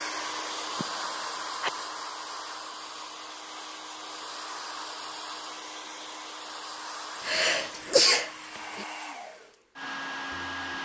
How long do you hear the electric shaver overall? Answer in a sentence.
You can't hear the electric shaver here.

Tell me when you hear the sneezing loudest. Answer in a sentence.
The volume of the sneezing peaks at 8 seconds.